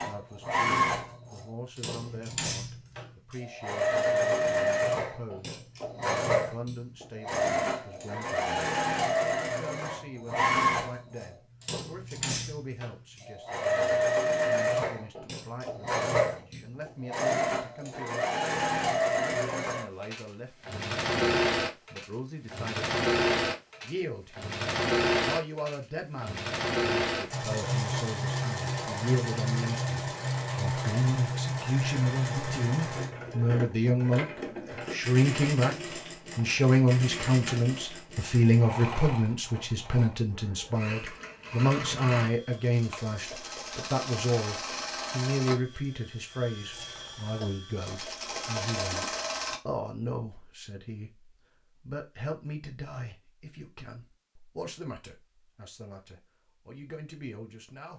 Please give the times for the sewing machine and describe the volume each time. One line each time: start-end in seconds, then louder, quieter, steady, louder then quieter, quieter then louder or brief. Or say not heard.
0.0-49.6 quieter.